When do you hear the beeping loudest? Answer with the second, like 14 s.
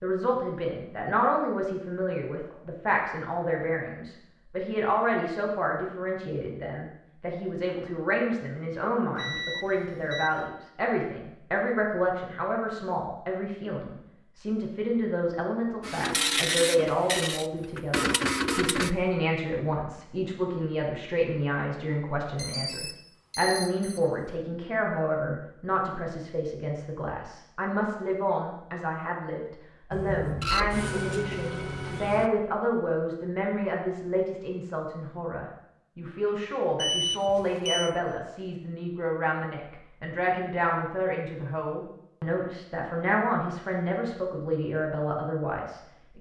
37 s.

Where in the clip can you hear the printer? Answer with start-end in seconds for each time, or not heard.
15.8-18.9, 29.9-32.3.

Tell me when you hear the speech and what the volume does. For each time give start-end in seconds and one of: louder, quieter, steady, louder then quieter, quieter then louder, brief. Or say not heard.
0.0-46.1 steady.